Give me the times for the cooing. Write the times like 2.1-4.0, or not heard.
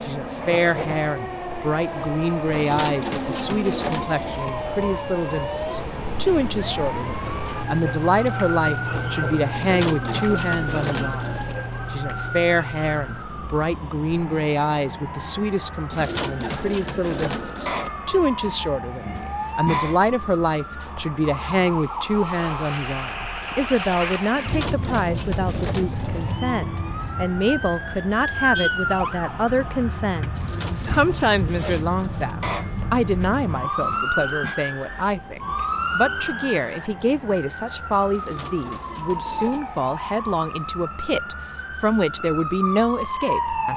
2.5-4.5, 9.6-11.6, 15.9-17.9, 24.4-26.4, 30.4-32.4, 38.1-39.6.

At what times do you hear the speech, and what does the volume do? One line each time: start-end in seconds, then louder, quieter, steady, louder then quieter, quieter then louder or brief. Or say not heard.
0.0-43.7 steady.